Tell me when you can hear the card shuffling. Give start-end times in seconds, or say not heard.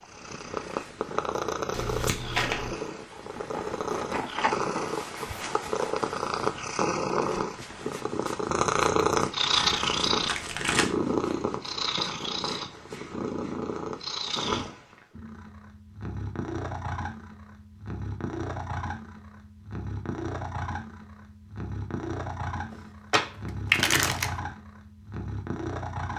1.7-2.8, 9.6-10.9, 23.1-24.3.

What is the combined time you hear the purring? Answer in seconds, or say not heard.
26 s.